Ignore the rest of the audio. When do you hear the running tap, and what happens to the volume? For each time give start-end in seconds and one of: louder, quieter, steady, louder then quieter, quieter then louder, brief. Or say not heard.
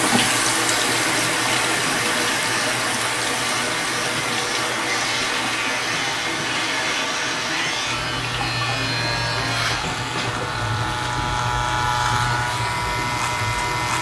0.0-13.9 quieter.